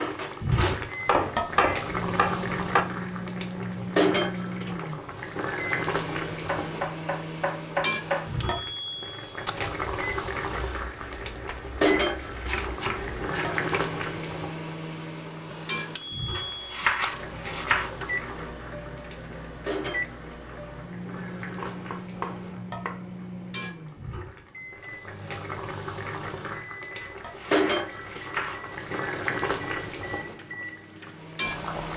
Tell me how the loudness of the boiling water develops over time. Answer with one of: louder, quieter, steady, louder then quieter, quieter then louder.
quieter then louder.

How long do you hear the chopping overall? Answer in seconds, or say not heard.
10 s.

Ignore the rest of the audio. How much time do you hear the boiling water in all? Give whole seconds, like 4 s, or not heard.
32 s.